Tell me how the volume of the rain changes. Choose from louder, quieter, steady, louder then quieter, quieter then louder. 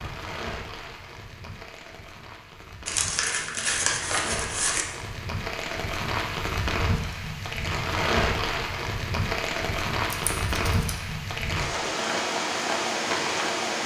louder.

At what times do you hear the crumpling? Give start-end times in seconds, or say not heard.
2.9-4.8, 10.1-10.9.